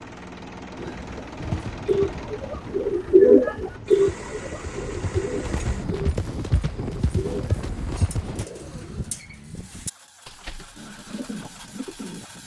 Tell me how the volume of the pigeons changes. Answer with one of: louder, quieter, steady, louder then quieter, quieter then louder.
louder then quieter.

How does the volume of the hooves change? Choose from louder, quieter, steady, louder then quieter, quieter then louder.
quieter then louder.